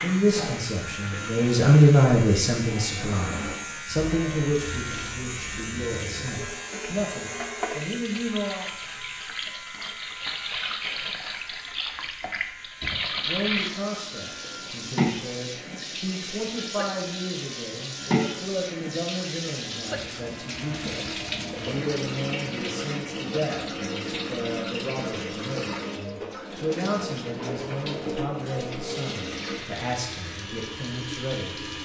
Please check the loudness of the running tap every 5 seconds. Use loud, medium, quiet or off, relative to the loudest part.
medium, medium, loud, loud, loud, loud, medium.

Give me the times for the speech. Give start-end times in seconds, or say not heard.
0.0-8.7, 13.2-31.6.